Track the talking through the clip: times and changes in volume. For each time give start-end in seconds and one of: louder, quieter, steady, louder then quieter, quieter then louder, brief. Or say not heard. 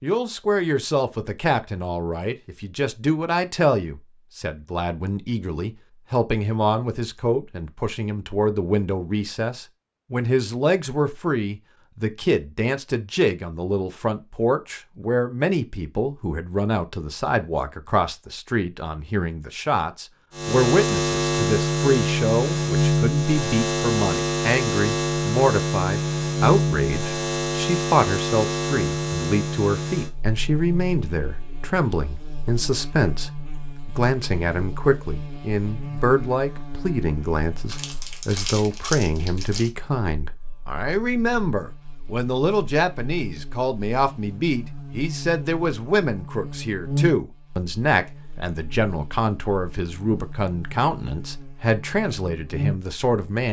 0.0-53.4 steady.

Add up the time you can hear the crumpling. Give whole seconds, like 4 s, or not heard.
2 s.